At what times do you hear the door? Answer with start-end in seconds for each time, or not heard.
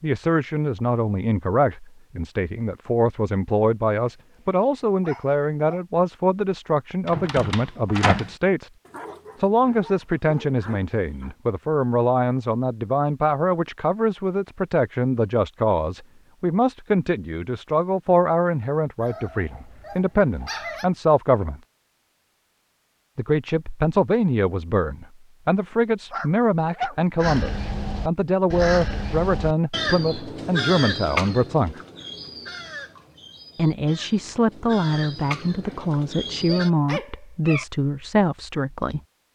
7.0-8.3.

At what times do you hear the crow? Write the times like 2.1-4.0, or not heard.
27.2-36.7.